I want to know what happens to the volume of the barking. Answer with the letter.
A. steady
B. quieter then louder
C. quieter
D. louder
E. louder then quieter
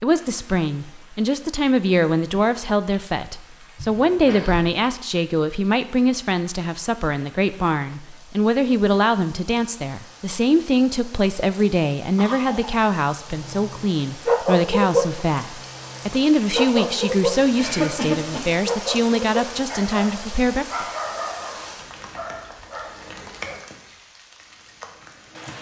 C.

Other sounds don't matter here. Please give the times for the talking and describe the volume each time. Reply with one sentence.
The talking can be heard from 0.0 to 20.9 s, at a steady volume.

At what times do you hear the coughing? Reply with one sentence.
You can hear the coughing from 3.8 to 4.7 s, from 12.2 to 12.8 s and from 17.6 to 18.5 s.